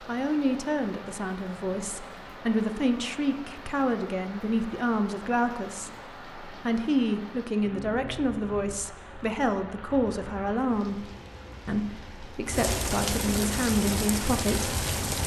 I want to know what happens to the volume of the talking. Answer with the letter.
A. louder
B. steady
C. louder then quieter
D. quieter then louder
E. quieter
B.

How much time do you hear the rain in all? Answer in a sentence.
The rain can be heard for 15 seconds in total.